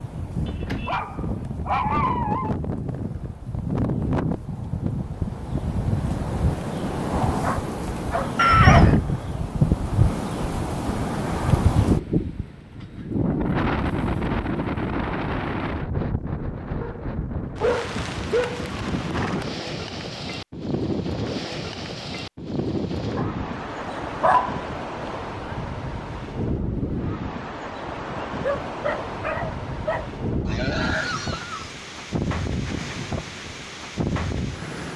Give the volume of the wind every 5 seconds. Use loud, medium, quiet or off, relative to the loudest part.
medium, loud, loud, medium, medium, medium, medium.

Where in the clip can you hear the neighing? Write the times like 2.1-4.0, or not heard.
8.3-8.9, 18.9-19.5, 30.4-31.8.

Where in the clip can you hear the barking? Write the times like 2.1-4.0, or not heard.
0.5-2.5, 7.4-8.3, 16.8-18.7, 23.1-24.6, 28.4-30.1.